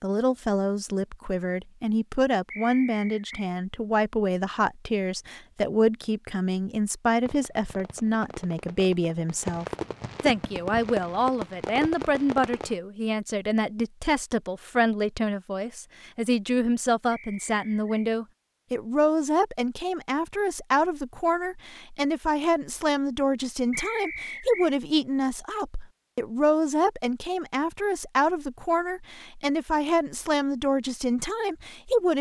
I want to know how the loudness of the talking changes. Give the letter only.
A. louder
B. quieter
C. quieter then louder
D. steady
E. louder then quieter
D.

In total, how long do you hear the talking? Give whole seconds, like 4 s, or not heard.
32 s.